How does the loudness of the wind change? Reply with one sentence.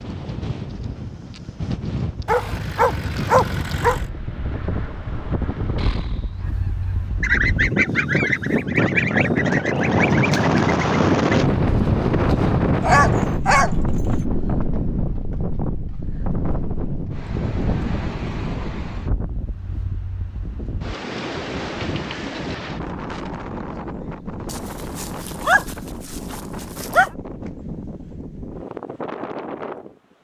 The volume of the wind goes up, then down.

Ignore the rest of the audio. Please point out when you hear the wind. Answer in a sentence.
You can hear the wind from 0.0 to 30.1 s.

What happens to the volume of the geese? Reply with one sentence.
The loudness of the geese goes up, then down.